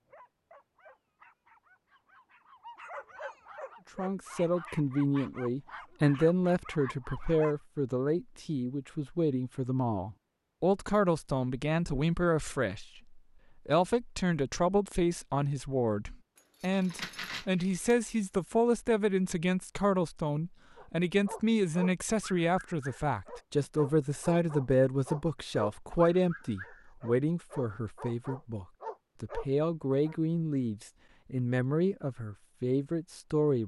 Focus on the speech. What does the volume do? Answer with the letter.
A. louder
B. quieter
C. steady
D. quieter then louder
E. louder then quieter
C.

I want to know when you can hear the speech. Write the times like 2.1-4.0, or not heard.
4.0-33.6.